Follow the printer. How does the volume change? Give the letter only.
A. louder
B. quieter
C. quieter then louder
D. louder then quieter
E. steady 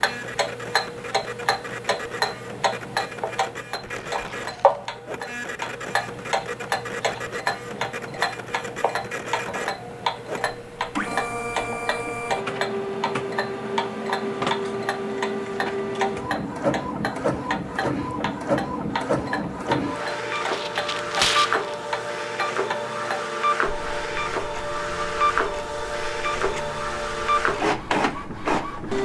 A.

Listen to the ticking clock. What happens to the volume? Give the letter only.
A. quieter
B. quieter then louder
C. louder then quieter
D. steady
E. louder
A.